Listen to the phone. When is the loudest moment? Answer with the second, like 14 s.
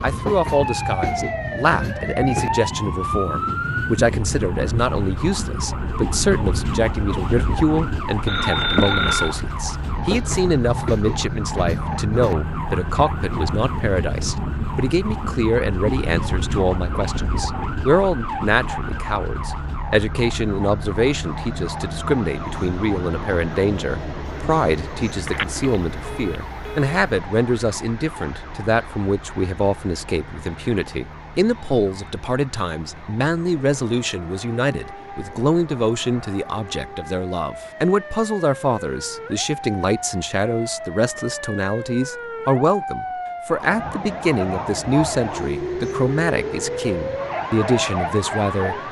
9 s.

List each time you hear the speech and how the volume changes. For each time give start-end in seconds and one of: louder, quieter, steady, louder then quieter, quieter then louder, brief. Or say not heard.
0.0-48.8 steady.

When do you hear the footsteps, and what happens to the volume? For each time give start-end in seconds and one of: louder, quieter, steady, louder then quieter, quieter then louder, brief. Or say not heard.
not heard.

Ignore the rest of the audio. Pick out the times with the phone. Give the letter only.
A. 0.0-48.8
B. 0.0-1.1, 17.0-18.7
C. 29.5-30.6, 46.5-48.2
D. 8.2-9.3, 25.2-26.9
D.